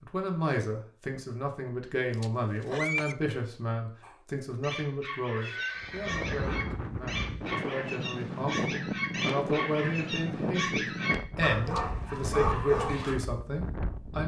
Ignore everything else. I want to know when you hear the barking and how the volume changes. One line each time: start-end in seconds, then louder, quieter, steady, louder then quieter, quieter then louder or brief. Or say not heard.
4.0-13.2 louder.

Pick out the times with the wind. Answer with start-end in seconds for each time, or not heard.
5.8-14.2.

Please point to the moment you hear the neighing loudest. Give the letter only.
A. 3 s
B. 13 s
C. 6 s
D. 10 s
A.